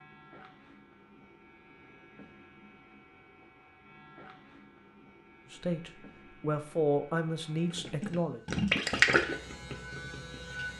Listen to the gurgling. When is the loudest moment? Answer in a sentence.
The loudest moment of the gurgling is at 9 seconds.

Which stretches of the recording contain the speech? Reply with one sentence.
You can hear the speech from 5.5 to 8.4 s.